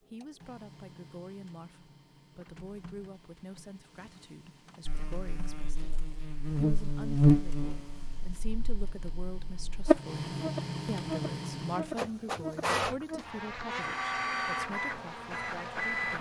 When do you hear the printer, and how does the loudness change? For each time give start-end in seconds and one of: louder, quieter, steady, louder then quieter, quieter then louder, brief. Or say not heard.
0.0-16.1 louder.